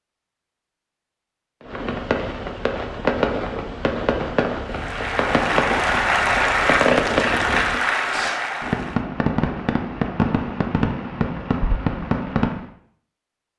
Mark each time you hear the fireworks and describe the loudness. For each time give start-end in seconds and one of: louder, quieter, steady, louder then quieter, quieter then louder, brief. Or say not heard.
1.6-12.7 steady.